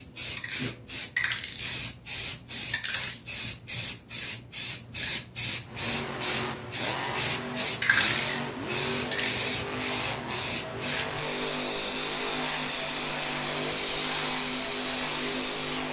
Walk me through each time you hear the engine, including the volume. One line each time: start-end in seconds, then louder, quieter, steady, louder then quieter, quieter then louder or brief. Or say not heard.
5.7-15.8 steady.